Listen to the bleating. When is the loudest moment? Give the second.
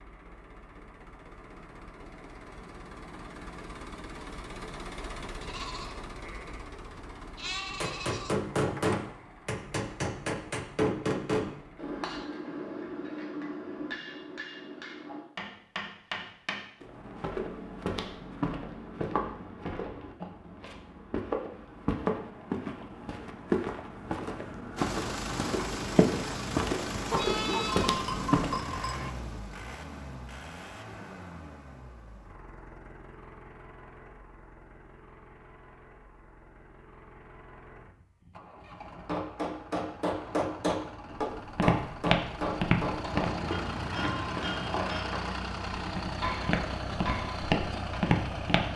28 s.